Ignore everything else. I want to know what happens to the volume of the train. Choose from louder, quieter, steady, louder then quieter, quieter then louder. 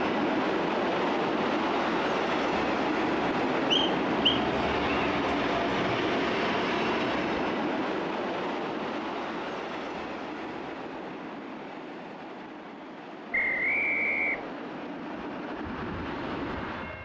quieter.